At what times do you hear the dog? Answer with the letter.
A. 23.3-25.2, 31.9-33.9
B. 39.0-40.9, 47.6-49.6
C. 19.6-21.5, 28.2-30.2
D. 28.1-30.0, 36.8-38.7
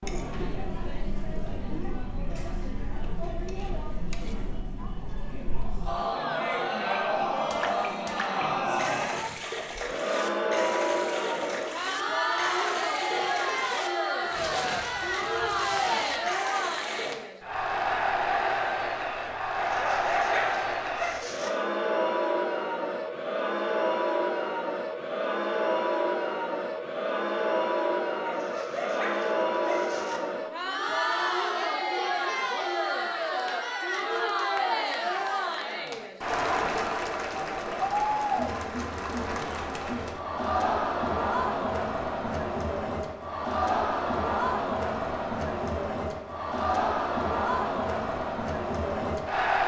C.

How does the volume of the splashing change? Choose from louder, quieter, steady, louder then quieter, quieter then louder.
steady.